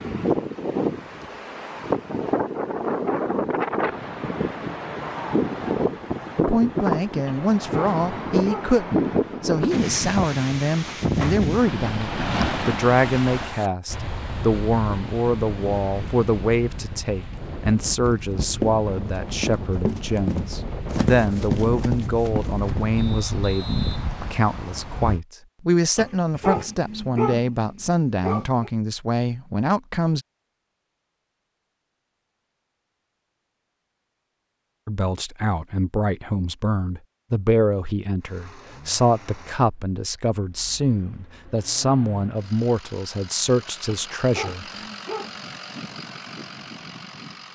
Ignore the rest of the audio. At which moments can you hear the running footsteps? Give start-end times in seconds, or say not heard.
17.9-22.9.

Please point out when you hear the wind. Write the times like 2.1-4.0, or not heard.
0.0-25.2.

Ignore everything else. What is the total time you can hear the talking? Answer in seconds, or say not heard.
34 s.